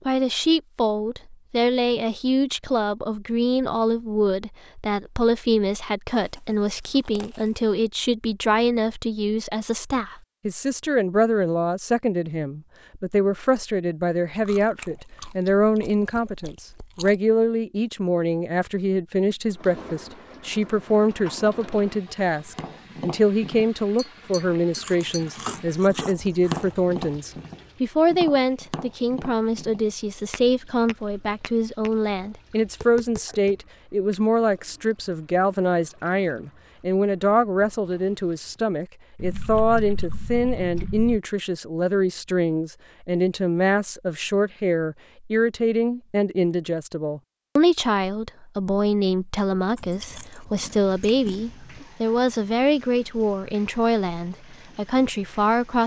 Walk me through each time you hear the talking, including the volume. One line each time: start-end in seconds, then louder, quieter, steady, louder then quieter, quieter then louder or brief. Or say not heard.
0.1-55.8 steady.